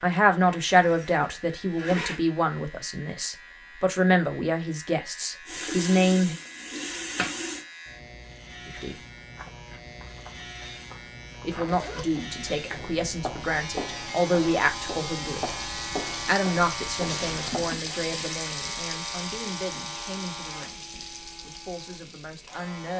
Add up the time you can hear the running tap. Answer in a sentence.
You can hear the running tap for 11 seconds altogether.